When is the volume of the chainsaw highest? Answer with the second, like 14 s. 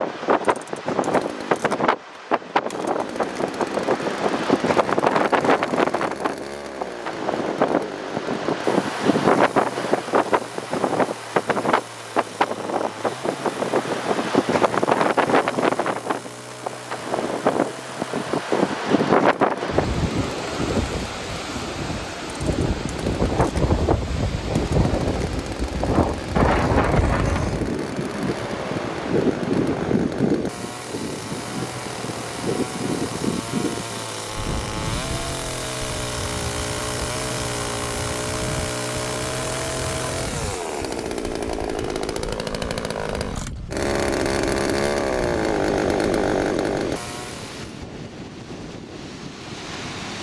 46 s.